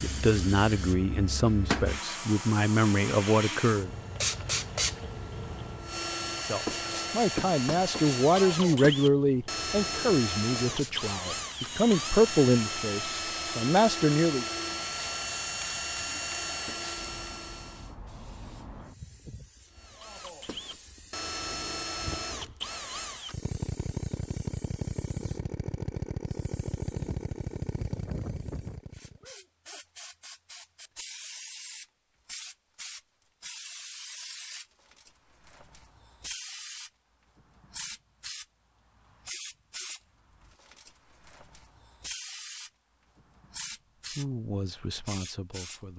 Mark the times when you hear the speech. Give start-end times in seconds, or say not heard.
0.0-3.9, 6.4-14.4, 44.1-45.9.